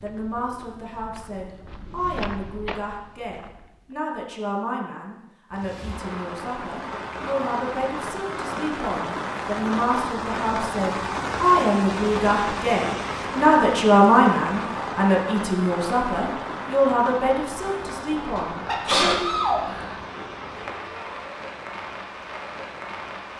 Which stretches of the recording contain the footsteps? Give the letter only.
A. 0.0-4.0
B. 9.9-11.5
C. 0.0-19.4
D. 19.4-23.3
A.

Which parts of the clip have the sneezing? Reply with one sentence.
You can hear the sneezing from 18.4 to 19.9 s.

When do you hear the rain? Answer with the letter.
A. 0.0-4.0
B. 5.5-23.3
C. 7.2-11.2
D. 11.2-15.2
B.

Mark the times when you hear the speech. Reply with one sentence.
You can hear the speech from 0.0 to 19.4 s.